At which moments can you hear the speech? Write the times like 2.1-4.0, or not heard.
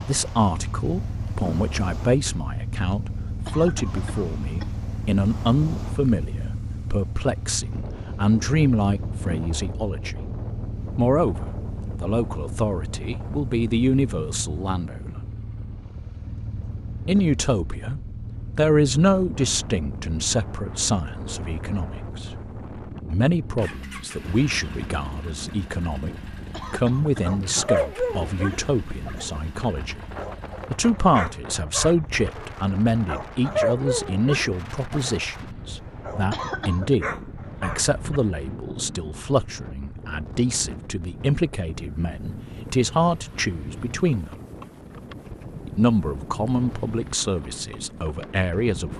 0.1-10.2, 10.9-15.2, 17.1-30.0, 30.7-44.3, 45.6-48.9.